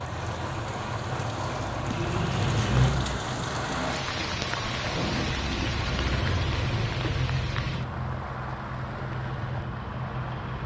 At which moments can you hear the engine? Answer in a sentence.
The engine can be heard from 0.0 to 10.6 s.